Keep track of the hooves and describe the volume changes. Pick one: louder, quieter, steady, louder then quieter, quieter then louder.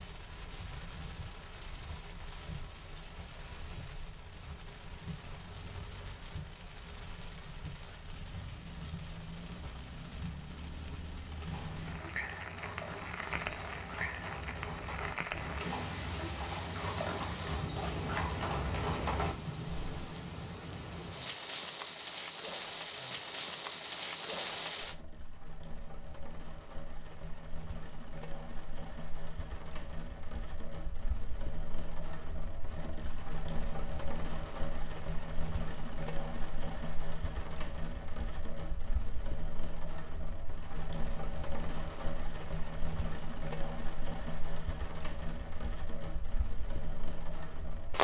louder.